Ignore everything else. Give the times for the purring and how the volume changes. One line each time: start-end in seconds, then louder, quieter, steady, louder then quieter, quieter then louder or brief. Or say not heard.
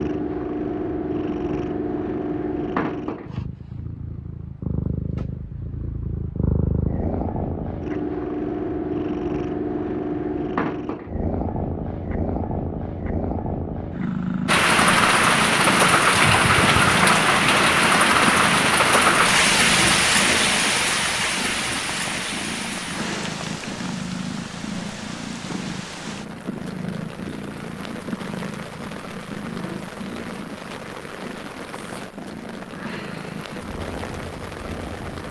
0.0-35.2 quieter.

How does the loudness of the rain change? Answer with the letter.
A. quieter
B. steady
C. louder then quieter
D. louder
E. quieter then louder
A.